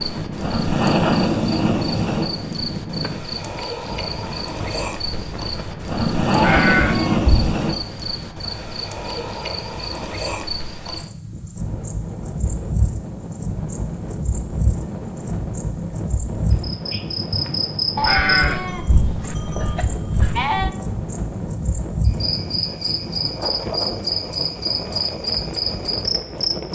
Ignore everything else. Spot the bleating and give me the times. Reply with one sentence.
The bleating can be heard from 6.3 to 7.5 s and from 17.9 to 20.7 s.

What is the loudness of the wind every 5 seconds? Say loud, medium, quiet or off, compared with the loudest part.
loud, medium, loud, loud, loud, loud.